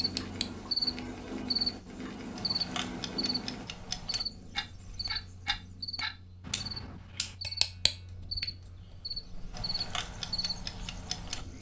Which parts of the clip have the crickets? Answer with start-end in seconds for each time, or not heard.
0.0-11.5.